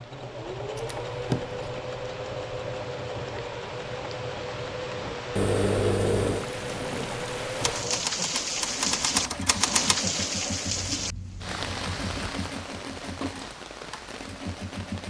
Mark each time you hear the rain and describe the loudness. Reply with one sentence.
You can hear the rain from 0.0 to 15.0 s, getting louder then quieter.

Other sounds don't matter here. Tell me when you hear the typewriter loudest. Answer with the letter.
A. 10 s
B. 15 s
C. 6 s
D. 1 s
A.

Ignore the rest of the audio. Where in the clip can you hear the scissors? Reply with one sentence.
The scissors can be heard from 0.8 to 1.7 s, from 5.3 to 6.5 s and from 10.7 to 12.6 s.